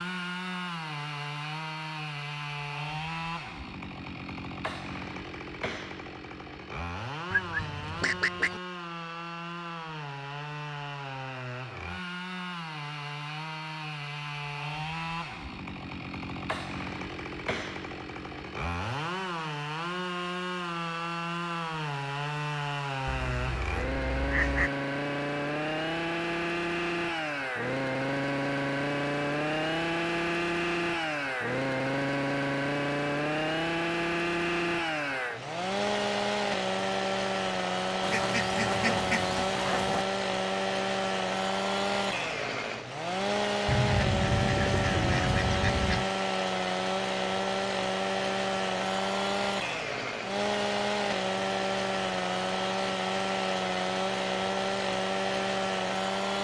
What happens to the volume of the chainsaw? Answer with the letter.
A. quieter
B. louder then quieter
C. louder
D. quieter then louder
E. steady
C.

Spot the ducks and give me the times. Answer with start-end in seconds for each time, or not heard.
7.3-8.6, 23.1-24.7, 38.0-40.0, 43.6-46.1.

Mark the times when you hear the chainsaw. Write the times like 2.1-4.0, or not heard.
0.0-56.3.